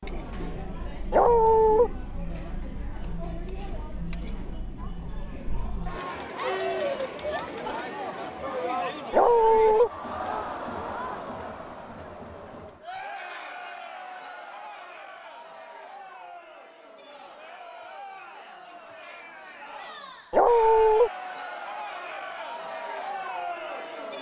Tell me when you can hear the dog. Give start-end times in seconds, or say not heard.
1.1-1.9, 9.1-9.9, 20.3-21.1.